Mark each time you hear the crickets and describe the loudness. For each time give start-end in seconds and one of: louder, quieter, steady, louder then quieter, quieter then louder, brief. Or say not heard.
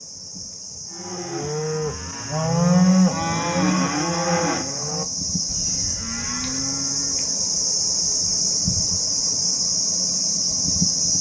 0.0-11.1 louder.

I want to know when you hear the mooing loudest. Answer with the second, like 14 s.
3 s.